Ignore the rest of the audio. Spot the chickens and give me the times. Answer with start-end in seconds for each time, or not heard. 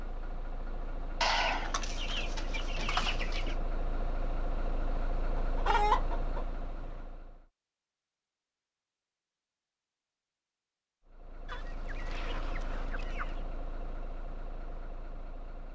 1.2-3.5, 5.3-7.0, 11.4-13.4.